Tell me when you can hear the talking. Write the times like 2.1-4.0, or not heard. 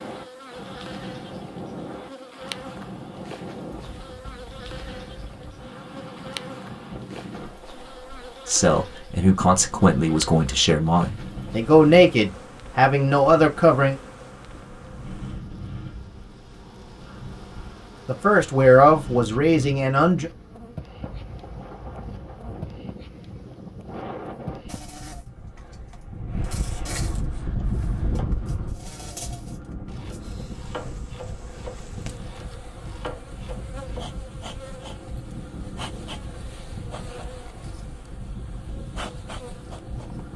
8.4-13.9, 18.1-20.3.